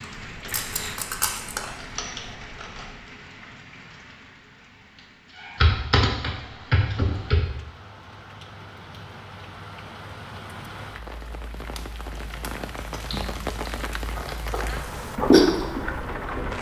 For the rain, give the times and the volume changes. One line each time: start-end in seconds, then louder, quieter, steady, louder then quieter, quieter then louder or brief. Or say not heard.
0.0-16.5 quieter then louder.